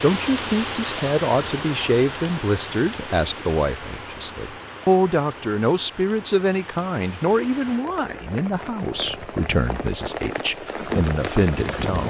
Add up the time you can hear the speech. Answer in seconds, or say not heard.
12 s.